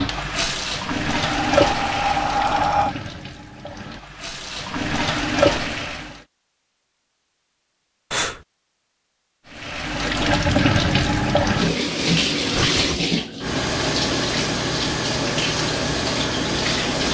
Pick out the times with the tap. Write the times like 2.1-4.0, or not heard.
0.0-6.2, 9.5-17.0.